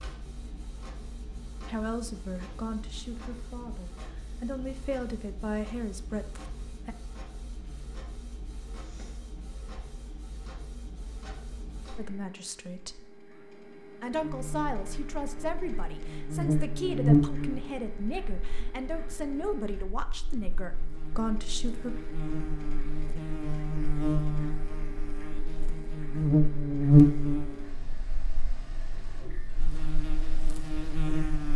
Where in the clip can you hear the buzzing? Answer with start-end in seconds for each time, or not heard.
14.2-31.5.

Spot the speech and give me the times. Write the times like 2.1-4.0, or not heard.
1.6-7.0, 11.9-13.0, 14.0-21.9.